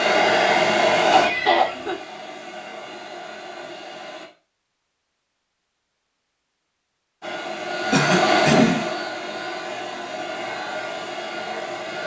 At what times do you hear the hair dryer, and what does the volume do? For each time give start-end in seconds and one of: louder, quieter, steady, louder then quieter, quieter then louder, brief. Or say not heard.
0.0-4.3 quieter
7.2-12.0 quieter.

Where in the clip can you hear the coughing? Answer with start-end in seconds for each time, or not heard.
1.1-1.9, 7.9-8.8.